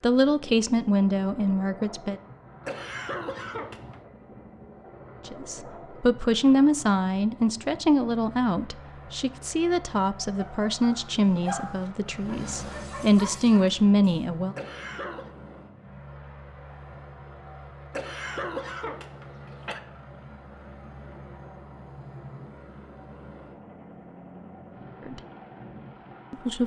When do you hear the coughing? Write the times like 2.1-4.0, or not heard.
2.6-4.0, 14.6-15.3, 17.9-19.8.